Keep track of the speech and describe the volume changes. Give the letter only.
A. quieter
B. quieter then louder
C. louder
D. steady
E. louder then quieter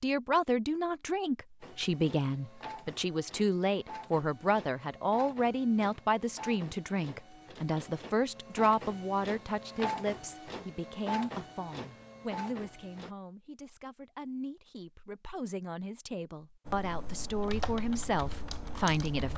B.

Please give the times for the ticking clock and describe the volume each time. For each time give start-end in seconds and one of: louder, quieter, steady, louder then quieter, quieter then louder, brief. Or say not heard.
not heard.